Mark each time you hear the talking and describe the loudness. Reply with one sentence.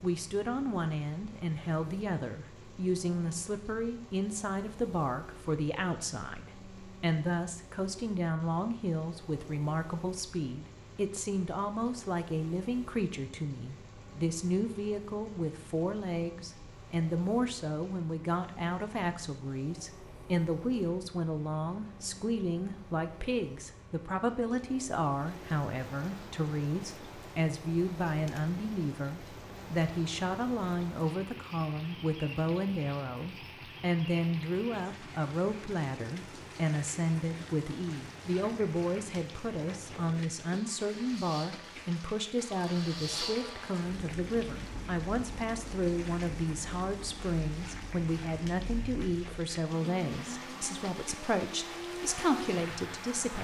The talking can be heard from 0.0 to 53.3 s, at a steady volume.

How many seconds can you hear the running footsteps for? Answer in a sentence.
You can't hear the running footsteps here.